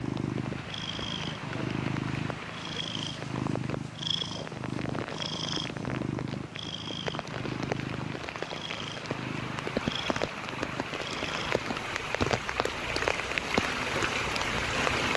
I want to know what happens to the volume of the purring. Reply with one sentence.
The loudness of the purring goes down.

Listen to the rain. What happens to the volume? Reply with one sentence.
The loudness of the rain goes up.